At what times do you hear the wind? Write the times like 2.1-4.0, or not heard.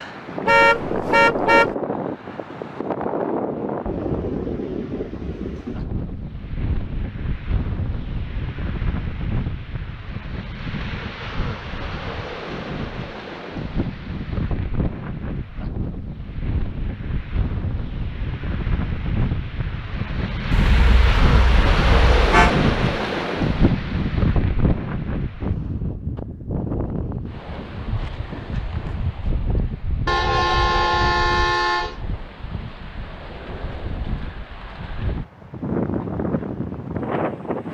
0.0-37.6.